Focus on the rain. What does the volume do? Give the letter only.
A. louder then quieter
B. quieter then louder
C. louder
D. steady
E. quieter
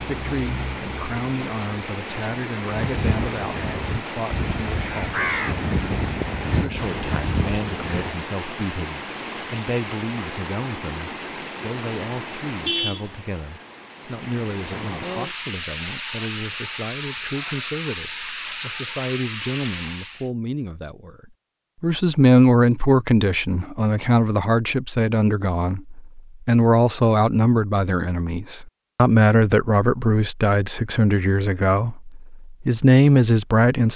D.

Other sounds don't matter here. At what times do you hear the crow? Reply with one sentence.
You can hear the crow from 2.6 to 8.1 s.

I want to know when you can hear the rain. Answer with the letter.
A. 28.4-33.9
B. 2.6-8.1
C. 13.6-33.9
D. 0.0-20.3
D.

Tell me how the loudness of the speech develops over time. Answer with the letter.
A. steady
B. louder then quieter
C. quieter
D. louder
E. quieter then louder
D.